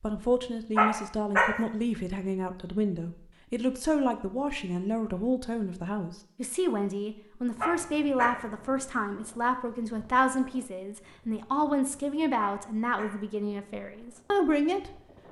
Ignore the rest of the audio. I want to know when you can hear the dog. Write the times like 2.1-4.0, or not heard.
0.8-1.6, 7.6-8.4, 12.3-13.2.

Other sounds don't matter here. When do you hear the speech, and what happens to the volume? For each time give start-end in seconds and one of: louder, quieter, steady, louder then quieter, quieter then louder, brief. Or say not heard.
0.0-14.9 steady.